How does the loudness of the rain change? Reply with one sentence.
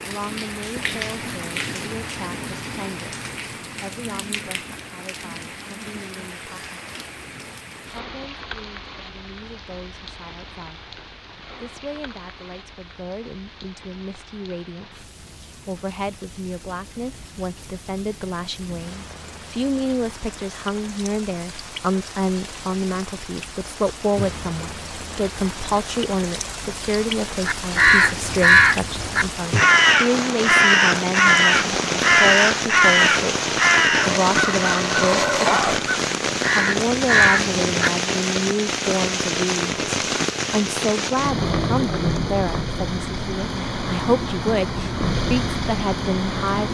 The loudness of the rain goes down, then up.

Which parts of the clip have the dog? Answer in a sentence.
The dog can be heard from 34.2 to 35.9 s.